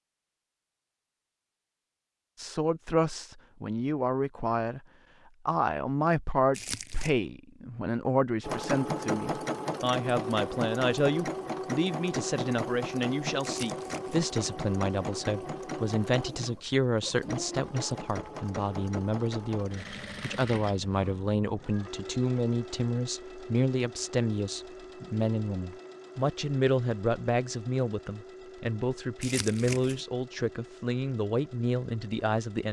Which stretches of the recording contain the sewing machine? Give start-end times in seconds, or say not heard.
8.4-32.6.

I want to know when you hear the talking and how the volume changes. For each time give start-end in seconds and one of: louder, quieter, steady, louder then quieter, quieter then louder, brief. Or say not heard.
2.4-4.8 brief
5.5-32.6 steady.